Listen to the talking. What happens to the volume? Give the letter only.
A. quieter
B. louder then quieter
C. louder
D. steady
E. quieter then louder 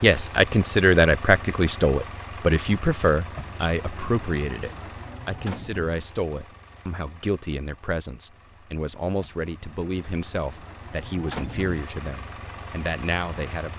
A.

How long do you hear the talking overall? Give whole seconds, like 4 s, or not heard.
14 s.